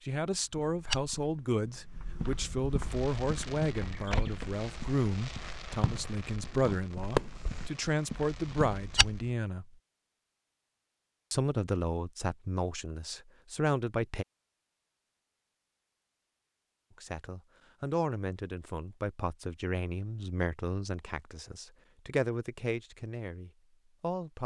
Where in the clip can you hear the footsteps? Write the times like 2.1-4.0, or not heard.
0.3-9.3.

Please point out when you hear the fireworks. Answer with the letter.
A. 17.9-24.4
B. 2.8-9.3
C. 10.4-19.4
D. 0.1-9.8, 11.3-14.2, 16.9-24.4
B.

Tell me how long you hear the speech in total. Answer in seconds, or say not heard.
20 s.